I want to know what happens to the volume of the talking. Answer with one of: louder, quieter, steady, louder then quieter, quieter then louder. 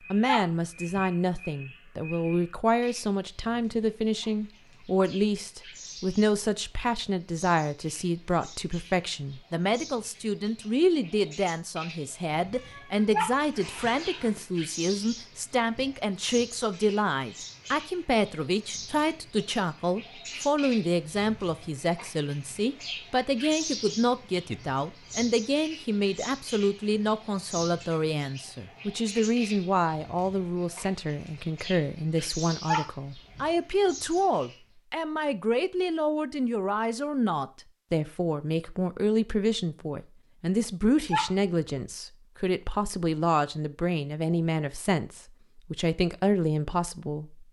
steady.